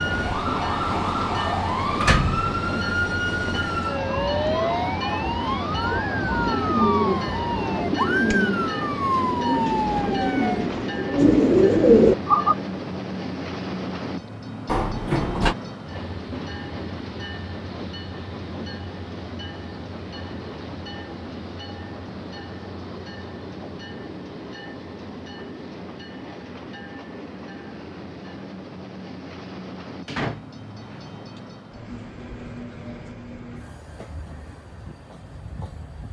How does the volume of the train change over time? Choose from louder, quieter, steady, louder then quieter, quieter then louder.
quieter.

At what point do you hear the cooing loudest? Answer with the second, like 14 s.
12 s.